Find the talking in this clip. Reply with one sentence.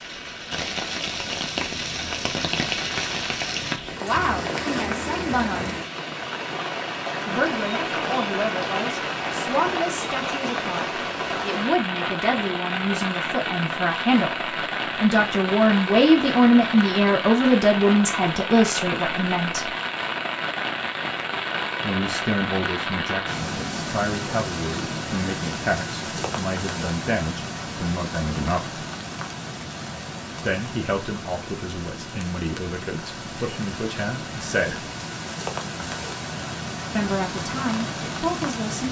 You can hear the talking from 4.0 to 5.8 s, from 7.2 to 19.7 s, from 21.8 to 28.8 s, from 30.4 to 34.9 s and from 37.0 to 38.8 s.